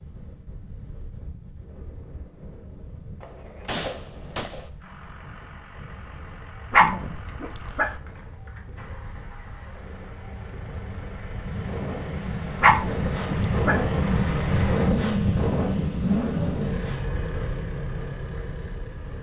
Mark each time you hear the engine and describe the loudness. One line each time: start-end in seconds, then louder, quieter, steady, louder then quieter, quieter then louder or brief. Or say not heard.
4.8-19.1 louder.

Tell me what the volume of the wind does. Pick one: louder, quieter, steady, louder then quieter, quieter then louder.
louder.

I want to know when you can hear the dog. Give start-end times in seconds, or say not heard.
6.7-8.0, 12.6-13.8.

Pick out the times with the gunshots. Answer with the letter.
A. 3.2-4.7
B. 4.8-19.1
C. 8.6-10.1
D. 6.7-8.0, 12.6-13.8
A.